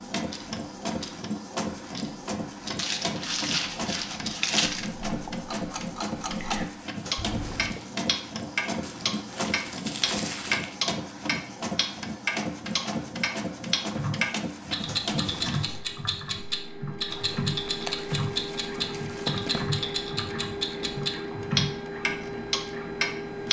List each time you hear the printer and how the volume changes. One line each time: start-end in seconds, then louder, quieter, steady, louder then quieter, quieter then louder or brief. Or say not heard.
0.0-23.4 steady.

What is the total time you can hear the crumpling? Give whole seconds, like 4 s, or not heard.
7 s.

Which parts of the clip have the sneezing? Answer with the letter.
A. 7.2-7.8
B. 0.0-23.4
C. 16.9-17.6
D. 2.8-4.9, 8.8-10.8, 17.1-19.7
A.